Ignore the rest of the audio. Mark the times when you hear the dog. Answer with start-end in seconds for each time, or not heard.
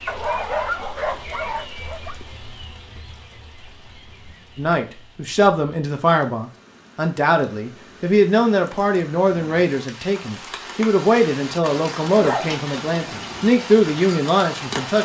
0.1-2.1, 12.2-13.5.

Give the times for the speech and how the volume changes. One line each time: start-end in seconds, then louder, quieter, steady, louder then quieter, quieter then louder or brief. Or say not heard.
4.5-15.0 steady.